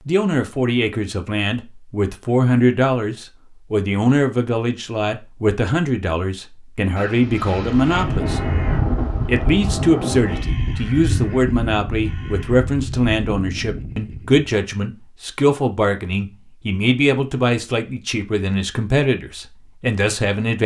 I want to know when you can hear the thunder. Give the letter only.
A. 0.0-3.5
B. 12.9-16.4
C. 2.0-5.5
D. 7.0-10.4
D.